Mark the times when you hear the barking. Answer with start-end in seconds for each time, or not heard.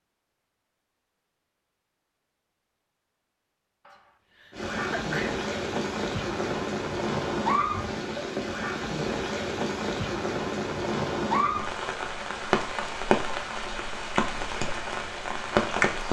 not heard.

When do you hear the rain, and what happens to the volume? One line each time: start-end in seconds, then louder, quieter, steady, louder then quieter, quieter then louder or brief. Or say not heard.
4.5-16.0 steady.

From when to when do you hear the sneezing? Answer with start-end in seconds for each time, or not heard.
3.9-5.4.